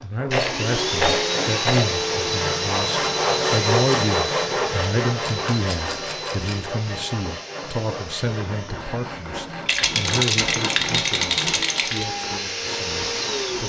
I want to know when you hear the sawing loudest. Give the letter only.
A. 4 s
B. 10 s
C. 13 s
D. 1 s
A.